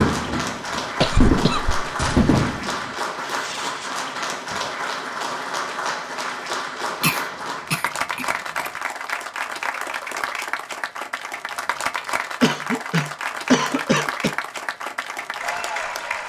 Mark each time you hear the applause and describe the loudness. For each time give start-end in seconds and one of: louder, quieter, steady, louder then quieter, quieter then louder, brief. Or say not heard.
0.0-16.2 steady.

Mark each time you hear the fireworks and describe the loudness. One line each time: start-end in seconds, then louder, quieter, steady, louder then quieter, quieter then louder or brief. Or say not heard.
0.0-4.8 louder then quieter.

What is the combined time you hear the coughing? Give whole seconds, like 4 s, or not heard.
5 s.